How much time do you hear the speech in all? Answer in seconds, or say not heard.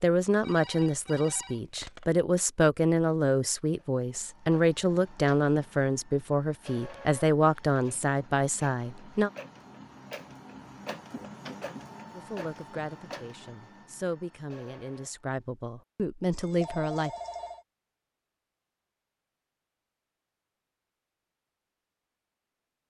14 s.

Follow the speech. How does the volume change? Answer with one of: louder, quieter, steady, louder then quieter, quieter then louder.
quieter.